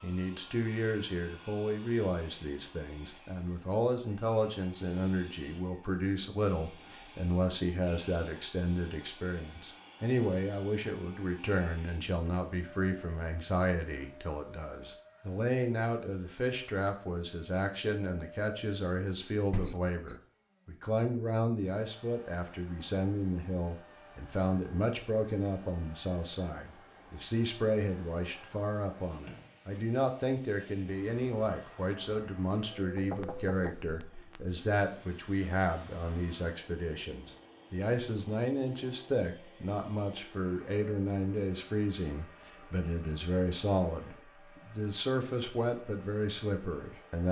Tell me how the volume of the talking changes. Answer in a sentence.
The loudness of the talking stays about the same.